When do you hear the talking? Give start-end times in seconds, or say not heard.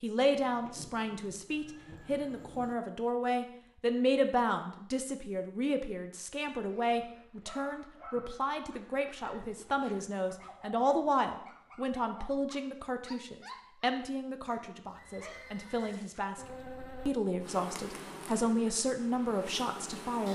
0.0-16.4, 17.1-20.3.